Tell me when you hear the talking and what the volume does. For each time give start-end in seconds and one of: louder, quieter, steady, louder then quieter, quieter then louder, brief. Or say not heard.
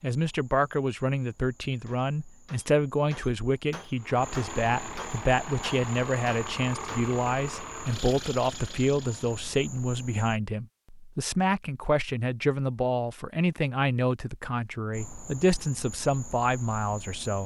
0.0-17.4 steady.